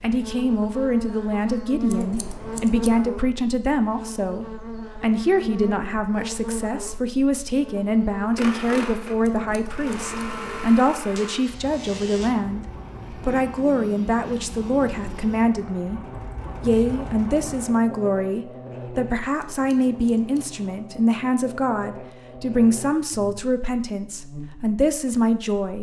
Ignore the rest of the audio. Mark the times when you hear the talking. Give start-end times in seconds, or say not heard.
0.0-16.0, 16.6-25.7.